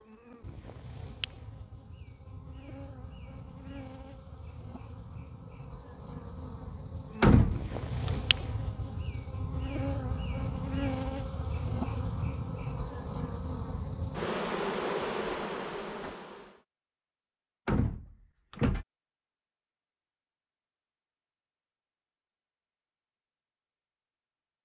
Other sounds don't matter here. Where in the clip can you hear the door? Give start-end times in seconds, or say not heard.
7.2-8.2, 17.6-18.9.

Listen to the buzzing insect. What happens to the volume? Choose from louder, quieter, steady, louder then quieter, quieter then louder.
louder.